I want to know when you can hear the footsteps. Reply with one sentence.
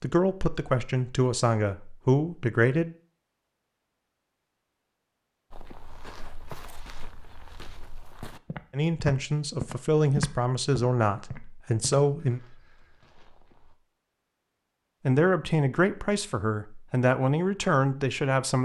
The footsteps can be heard from 5.5 to 13.8 s.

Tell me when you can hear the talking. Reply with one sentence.
The talking can be heard from 0.0 to 3.0 s, from 8.7 to 12.4 s and from 15.1 to 18.6 s.